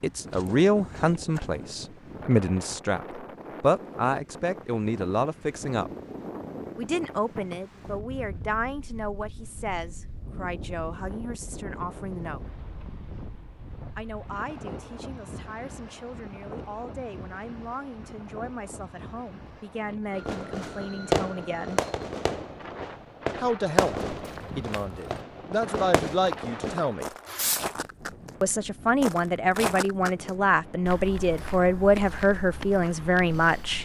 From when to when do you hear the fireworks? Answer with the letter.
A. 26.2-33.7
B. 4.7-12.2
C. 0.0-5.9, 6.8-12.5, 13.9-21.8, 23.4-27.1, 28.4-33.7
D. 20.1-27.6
D.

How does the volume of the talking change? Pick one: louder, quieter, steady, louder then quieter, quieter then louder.
quieter then louder.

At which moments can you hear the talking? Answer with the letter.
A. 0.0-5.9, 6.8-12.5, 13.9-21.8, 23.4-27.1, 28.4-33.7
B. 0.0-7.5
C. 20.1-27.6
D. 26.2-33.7
A.